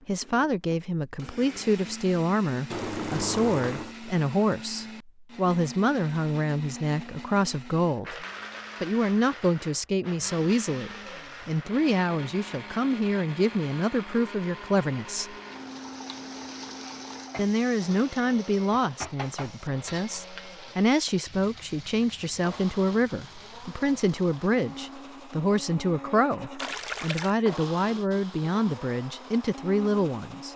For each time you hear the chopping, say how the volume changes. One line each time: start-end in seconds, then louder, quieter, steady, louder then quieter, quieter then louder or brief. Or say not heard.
not heard.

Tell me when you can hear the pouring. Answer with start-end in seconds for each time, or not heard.
2.7-4.0, 15.5-17.3, 26.6-27.4.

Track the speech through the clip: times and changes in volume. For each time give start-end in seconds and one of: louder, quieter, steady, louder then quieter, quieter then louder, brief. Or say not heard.
0.1-15.3 steady
17.4-30.5 steady.